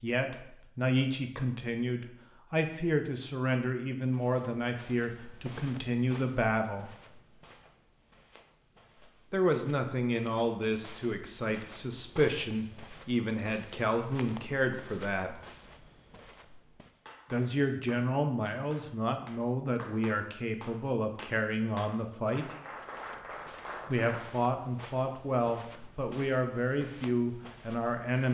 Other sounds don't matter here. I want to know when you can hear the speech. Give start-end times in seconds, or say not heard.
0.0-7.0, 9.3-15.3, 17.3-22.5, 23.9-28.2.